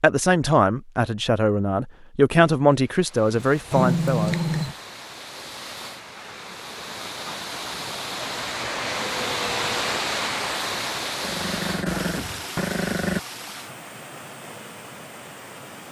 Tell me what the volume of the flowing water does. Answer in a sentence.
The loudness of the flowing water goes up, then down.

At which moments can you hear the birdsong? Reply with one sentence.
The birdsong can't be heard in this clip.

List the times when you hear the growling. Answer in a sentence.
You can hear the growling from 3.5 to 4.8 s and from 11.2 to 13.2 s.